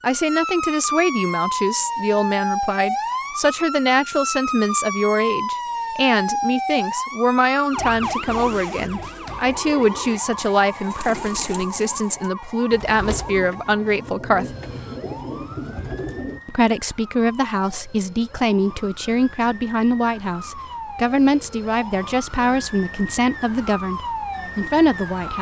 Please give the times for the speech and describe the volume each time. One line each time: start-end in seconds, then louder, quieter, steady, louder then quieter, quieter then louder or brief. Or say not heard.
0.0-14.4 steady
16.4-25.3 steady.